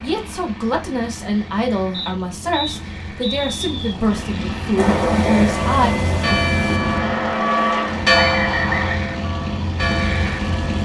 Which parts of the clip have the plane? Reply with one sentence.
You can hear the plane from 0.0 to 10.8 s.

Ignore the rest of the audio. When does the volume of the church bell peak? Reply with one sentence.
The volume of the church bell peaks at 8 seconds.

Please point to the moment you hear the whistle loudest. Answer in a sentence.
The volume of the whistle peaks at 9 seconds.